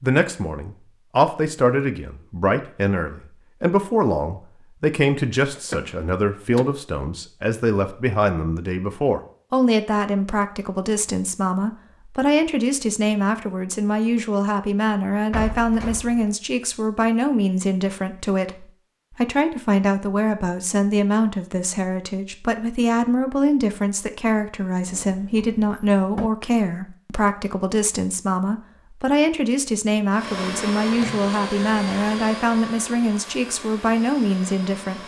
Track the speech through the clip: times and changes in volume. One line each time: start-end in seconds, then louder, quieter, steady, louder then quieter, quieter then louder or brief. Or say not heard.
0.0-35.0 steady.